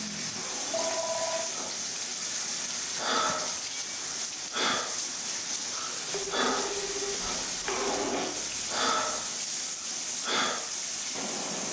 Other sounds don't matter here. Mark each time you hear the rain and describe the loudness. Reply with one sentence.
The rain can be heard from 0.0 to 11.6 s, at a steady volume.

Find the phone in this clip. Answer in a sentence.
The phone can be heard from 0.7 to 1.4 s and from 6.1 to 8.2 s.